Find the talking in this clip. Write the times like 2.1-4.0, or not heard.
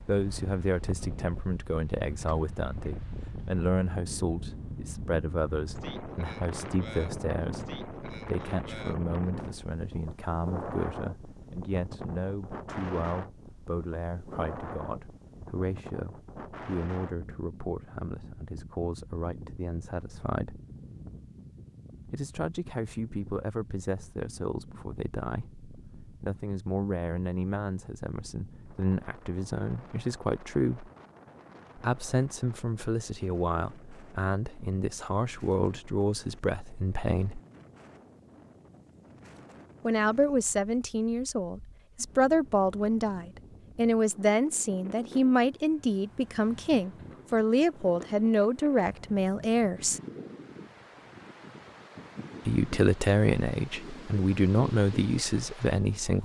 0.0-20.6, 22.1-30.9, 31.8-37.4, 39.9-50.0, 52.5-56.2.